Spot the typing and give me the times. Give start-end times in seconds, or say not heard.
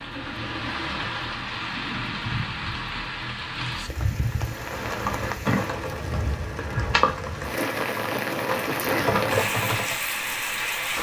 4.5-9.9.